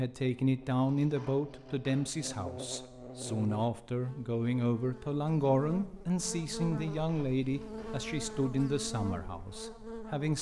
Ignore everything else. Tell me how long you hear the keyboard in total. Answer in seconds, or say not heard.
not heard.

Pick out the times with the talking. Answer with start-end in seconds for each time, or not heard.
0.0-10.3.